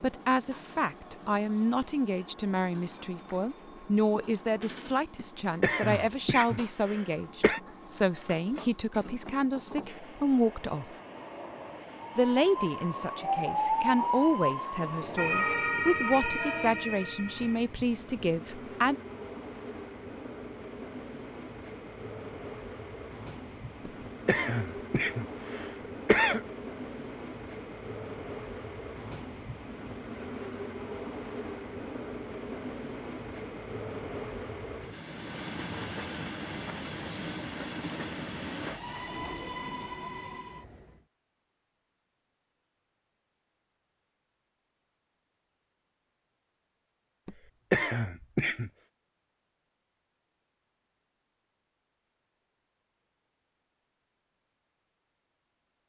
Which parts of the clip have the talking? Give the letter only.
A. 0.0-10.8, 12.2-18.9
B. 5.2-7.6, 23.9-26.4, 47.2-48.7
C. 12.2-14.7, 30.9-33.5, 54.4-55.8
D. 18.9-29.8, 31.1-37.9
A.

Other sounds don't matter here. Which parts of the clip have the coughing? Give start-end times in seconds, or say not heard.
5.2-7.6, 23.9-26.4, 47.2-48.7.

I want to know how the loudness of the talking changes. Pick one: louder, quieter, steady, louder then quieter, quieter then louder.
steady.